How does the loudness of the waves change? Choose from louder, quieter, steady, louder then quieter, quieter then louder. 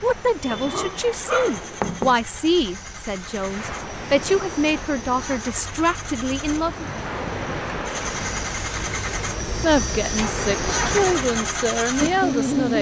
louder.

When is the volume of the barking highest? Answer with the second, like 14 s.
2 s.